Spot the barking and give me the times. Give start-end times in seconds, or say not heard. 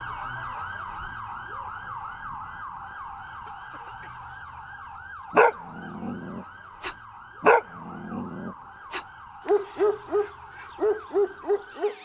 5.3-11.9.